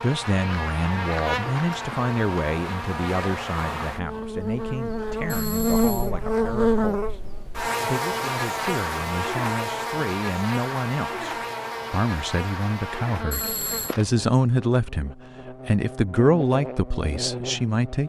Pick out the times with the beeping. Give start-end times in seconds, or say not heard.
5.2-6.1, 13.3-13.9.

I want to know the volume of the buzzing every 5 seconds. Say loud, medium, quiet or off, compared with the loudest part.
medium, loud, medium, medium.